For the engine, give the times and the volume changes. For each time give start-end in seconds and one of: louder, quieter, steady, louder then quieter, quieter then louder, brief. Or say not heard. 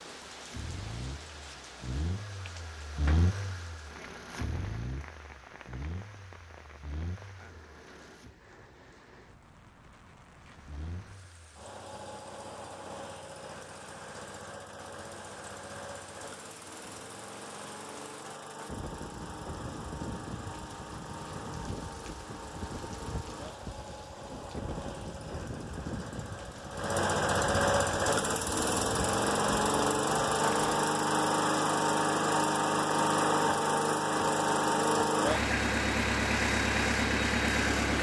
0.0-8.3 louder then quieter
10.4-37.9 louder.